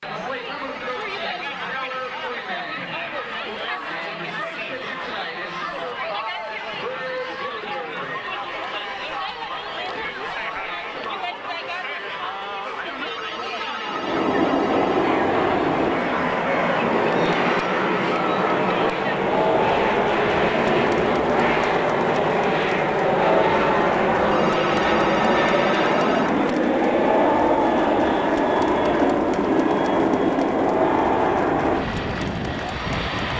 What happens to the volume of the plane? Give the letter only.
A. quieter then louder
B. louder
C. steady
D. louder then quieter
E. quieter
C.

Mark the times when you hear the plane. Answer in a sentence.
The plane can be heard from 13.8 to 33.3 s.